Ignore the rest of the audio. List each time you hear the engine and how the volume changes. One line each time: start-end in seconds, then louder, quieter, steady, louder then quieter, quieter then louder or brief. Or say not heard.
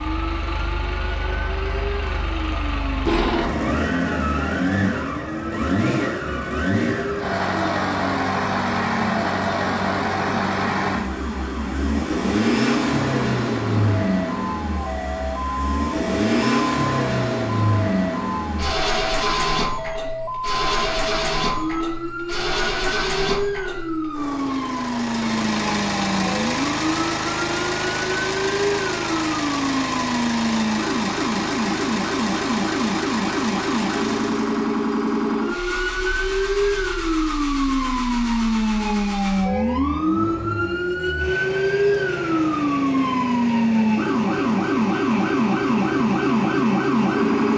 0.0-47.5 quieter.